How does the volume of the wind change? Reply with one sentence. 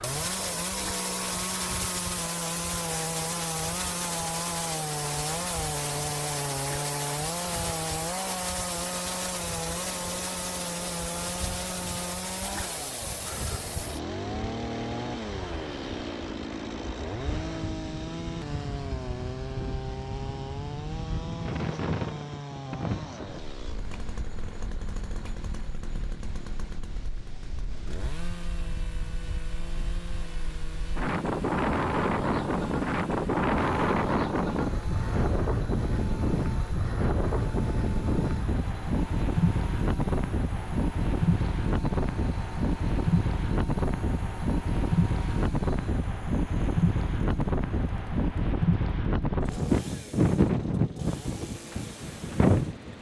The loudness of the wind goes up.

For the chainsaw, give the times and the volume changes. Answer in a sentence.
You can hear the chainsaw from 0.0 to 52.9 s, getting quieter.